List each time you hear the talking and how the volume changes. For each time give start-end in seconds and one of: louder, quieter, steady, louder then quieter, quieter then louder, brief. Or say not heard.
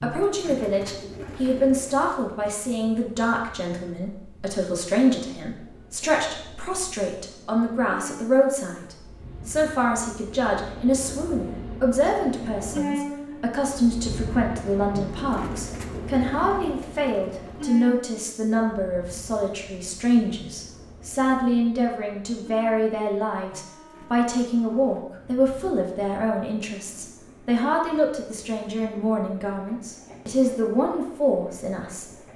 0.0-32.1 steady.